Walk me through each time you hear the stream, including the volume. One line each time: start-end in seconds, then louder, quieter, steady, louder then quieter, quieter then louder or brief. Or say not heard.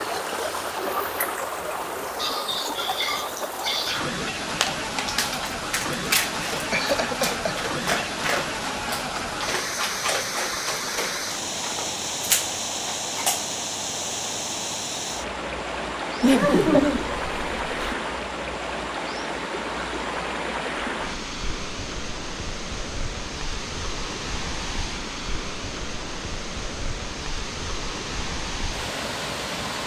0.0-29.8 steady.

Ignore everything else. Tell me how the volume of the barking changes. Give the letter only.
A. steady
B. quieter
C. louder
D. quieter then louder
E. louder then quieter
A.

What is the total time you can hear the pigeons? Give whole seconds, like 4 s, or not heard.
not heard.